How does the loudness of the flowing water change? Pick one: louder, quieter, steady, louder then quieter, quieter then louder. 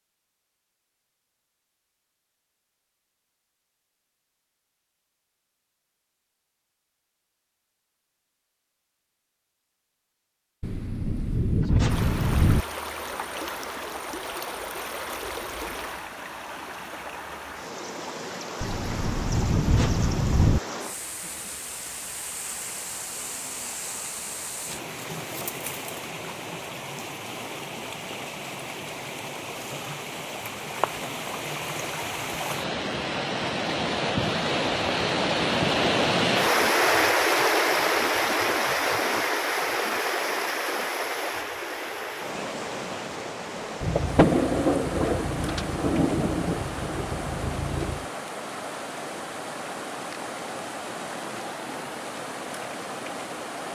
louder then quieter.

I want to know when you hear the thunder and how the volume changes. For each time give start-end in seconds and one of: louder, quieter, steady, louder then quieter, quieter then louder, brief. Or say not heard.
10.6-12.7 brief
18.6-20.6 brief
43.8-48.0 quieter.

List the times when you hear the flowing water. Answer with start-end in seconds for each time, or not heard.
11.8-53.6.